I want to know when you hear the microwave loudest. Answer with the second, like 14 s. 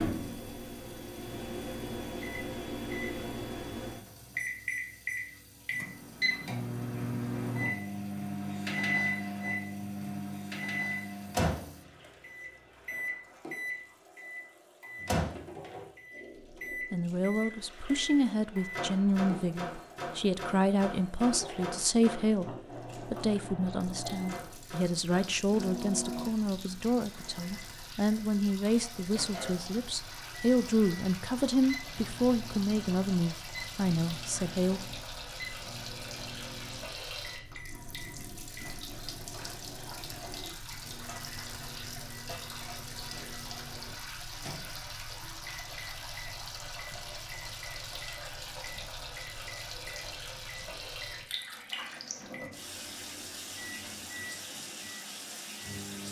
9 s.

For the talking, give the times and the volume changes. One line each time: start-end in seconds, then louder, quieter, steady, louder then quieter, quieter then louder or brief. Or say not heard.
16.9-34.8 steady.